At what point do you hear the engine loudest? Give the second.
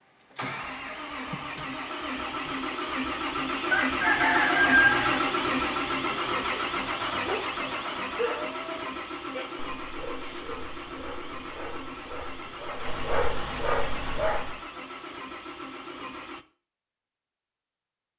5 s.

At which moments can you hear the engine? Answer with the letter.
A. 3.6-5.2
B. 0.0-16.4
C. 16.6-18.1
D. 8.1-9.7
B.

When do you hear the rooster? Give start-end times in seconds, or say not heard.
3.6-5.2.